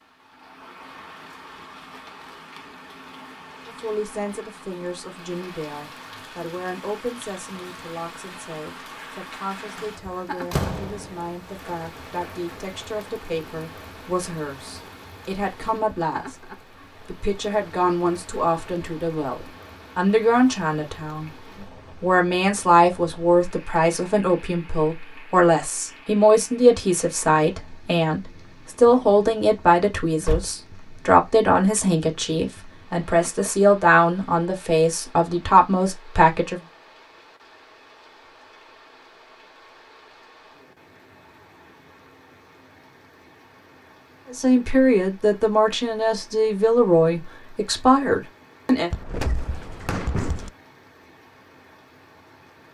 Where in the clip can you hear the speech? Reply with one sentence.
You can hear the speech from 3.6 to 21.3 s, from 22.0 to 36.6 s and from 44.3 to 48.9 s.